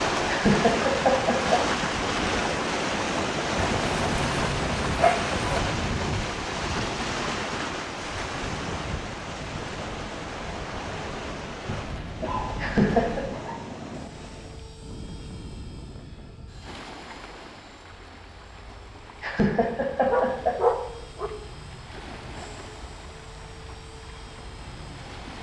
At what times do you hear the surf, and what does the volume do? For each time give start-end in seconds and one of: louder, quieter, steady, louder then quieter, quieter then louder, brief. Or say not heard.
0.0-25.3 quieter.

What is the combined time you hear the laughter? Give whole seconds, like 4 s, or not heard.
3 s.